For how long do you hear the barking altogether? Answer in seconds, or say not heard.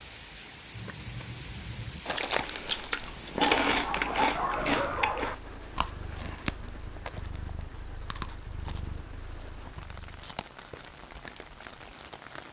2 s.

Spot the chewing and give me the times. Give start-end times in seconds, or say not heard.
0.7-11.9.